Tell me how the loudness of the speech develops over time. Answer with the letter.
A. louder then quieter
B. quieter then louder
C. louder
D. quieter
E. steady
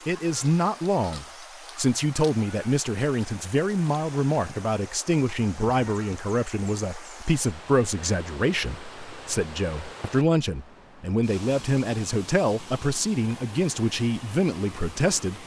E.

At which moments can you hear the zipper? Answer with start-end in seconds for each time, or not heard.
not heard.